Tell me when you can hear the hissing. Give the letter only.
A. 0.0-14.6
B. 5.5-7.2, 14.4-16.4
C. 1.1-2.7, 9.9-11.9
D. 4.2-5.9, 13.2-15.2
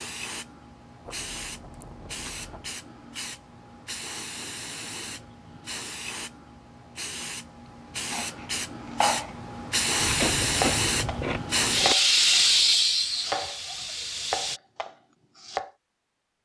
A.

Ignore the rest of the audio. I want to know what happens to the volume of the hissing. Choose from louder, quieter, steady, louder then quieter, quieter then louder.
louder.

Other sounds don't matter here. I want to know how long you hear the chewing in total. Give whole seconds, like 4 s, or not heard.
4 s.